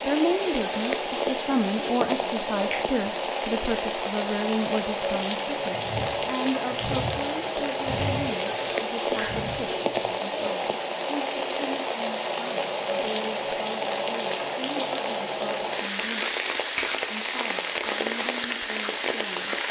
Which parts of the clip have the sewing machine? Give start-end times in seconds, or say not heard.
5.7-10.3.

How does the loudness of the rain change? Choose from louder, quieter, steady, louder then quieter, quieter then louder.
steady.